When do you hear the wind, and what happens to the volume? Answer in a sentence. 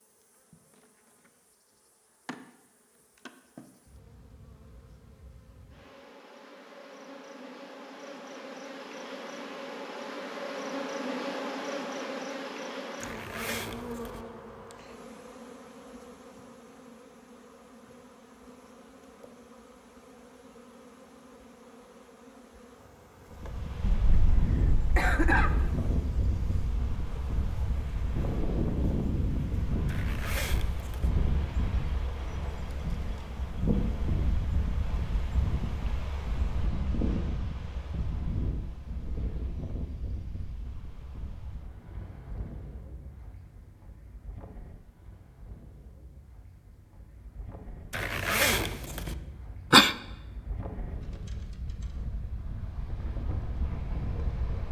The wind can be heard from 23.3 to 54.6 s, getting quieter then louder.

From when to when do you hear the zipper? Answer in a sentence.
You can hear the zipper from 13.0 to 14.2 s, from 29.9 to 31.1 s and from 47.9 to 49.1 s.